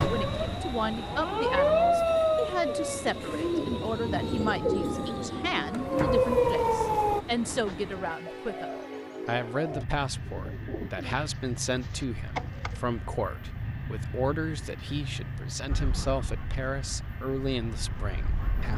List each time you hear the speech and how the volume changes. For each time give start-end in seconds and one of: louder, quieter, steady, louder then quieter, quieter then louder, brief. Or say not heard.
0.0-18.7 steady.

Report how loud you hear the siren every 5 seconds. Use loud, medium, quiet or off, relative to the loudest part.
loud, loud, off, quiet.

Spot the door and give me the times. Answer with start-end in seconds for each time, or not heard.
5.8-6.3.